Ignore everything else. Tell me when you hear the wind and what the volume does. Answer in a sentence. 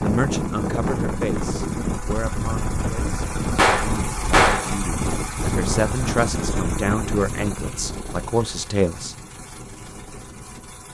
You can hear the wind from 0.0 to 10.8 s, getting quieter.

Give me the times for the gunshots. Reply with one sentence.
You can hear the gunshots from 3.5 to 4.7 s.